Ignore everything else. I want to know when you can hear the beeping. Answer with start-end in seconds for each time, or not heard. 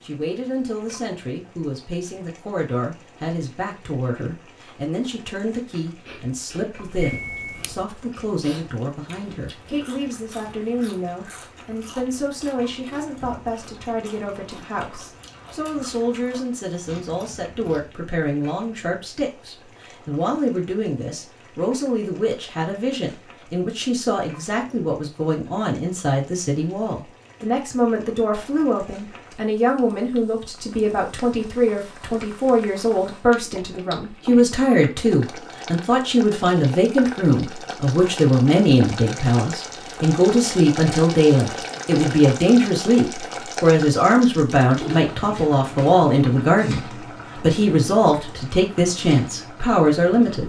6.9-7.8.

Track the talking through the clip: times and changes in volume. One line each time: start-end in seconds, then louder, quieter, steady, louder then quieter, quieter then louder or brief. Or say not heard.
0.0-50.4 louder.